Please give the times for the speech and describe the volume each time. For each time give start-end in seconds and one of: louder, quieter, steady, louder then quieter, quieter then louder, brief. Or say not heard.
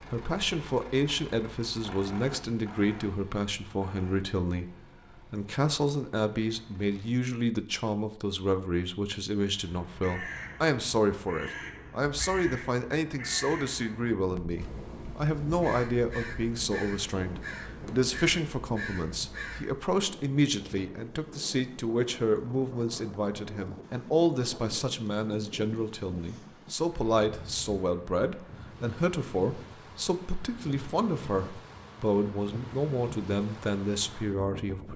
0.0-34.9 steady.